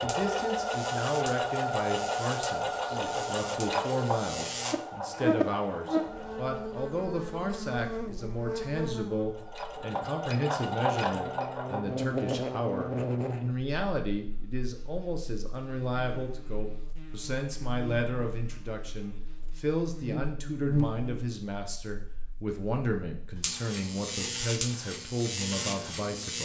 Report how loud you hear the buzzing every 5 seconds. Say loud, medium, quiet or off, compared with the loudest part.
medium, loud, loud, quiet, loud, loud.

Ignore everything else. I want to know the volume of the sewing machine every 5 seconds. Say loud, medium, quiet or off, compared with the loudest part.
loud, medium, loud, off, off, off.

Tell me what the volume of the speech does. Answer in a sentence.
The loudness of the speech stays about the same.